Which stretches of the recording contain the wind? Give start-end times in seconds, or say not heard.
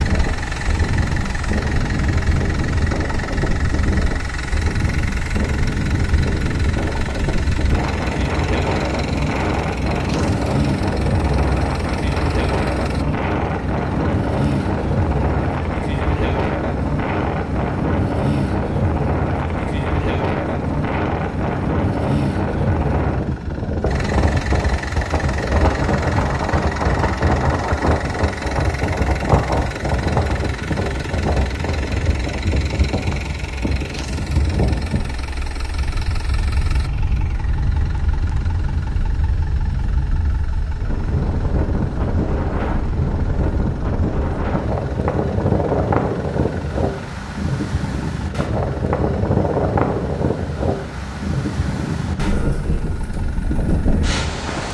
0.0-54.6.